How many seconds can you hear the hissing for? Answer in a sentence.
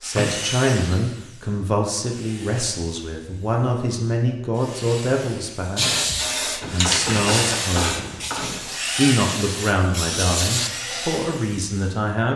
You can hear the hissing for 5 seconds altogether.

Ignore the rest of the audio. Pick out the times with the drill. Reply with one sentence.
You can hear the drill from 0.0 to 12.3 s.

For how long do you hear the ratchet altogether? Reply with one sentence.
The ratchet can be heard for 2 seconds in total.